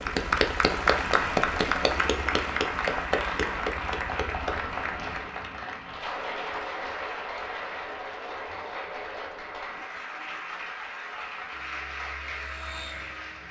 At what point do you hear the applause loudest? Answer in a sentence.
The volume of the applause peaks at 1 second.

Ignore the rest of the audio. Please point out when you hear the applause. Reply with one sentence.
The applause can be heard from 0.0 to 13.4 s.